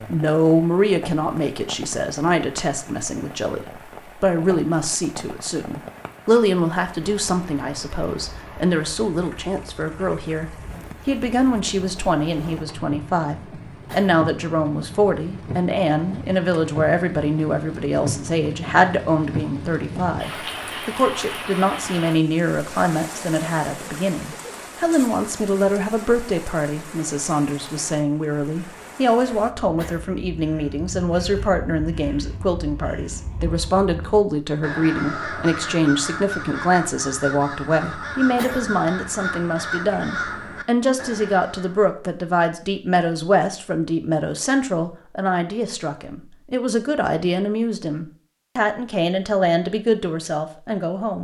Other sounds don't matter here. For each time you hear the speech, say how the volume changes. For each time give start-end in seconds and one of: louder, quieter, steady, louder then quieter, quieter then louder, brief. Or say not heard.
0.1-51.1 steady.